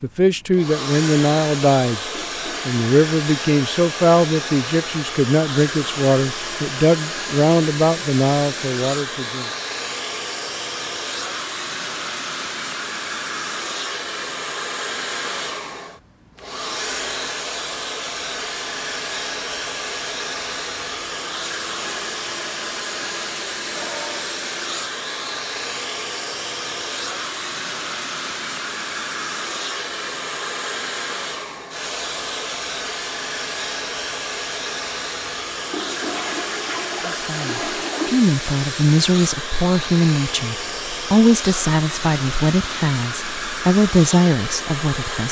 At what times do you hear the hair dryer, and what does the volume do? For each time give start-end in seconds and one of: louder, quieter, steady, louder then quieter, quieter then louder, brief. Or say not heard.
0.0-45.2 steady.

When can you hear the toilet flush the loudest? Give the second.
38 s.